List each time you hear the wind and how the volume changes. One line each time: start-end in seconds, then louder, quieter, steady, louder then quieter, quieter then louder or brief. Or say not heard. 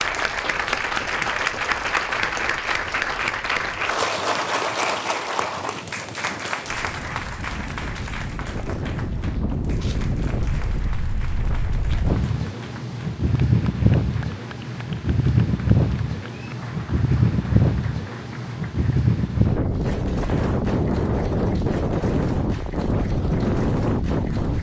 0.0-24.5 louder.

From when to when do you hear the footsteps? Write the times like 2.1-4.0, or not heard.
not heard.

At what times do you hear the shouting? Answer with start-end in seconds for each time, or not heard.
not heard.